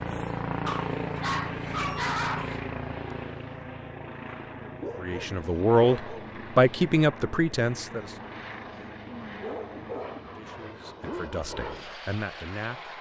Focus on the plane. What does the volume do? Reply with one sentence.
The loudness of the plane goes down.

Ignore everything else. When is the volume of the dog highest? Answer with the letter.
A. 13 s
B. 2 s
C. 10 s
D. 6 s
B.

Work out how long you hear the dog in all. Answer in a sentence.
The dog can be heard for 5 seconds in total.